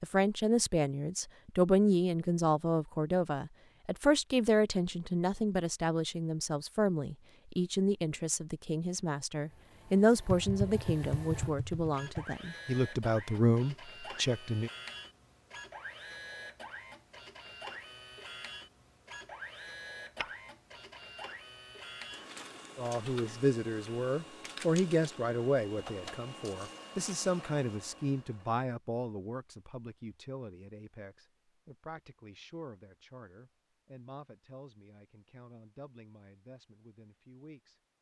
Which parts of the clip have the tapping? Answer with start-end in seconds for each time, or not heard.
10.3-12.2.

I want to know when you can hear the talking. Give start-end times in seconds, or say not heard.
0.0-14.7, 22.8-37.9.